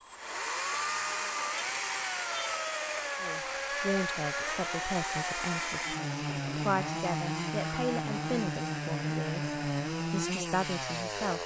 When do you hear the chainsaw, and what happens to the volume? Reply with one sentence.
You can hear the chainsaw from 0.0 to 11.4 s, at a steady volume.